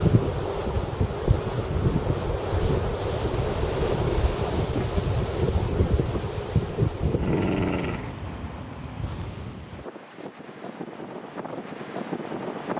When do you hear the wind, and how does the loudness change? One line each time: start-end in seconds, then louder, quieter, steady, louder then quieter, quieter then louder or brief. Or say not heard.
0.0-12.7 quieter.